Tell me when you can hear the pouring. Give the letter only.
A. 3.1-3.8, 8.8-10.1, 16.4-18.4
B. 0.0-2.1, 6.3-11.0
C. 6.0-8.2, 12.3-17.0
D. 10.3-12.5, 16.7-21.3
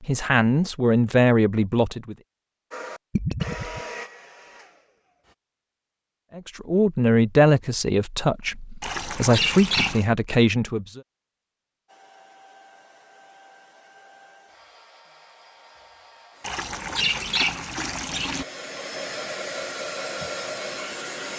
A.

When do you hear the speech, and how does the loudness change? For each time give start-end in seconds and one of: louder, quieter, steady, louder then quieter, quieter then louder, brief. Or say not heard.
0.0-2.1 brief
6.3-11.0 quieter then louder.